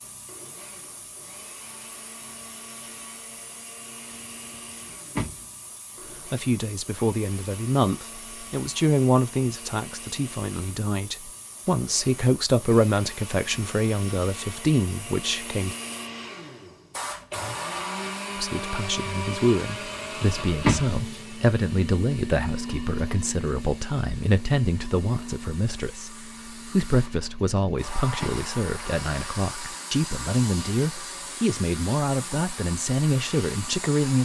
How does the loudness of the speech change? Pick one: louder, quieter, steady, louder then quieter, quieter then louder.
steady.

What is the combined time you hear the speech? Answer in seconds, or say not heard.
25 s.